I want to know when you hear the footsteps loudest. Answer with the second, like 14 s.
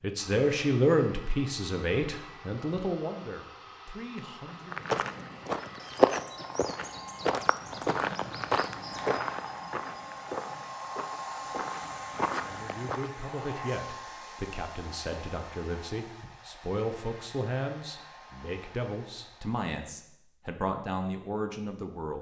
6 s.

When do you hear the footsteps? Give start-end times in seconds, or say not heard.
4.7-13.1.